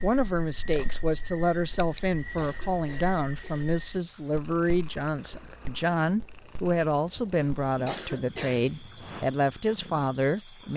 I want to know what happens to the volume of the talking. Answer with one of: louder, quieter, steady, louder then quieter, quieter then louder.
steady.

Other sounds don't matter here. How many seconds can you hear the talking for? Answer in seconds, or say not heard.
11 s.